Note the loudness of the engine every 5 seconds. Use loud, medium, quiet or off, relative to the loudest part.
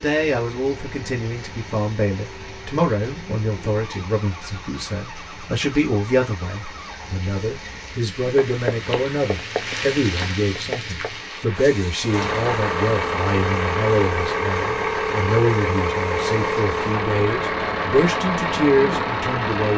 quiet, quiet, loud, loud.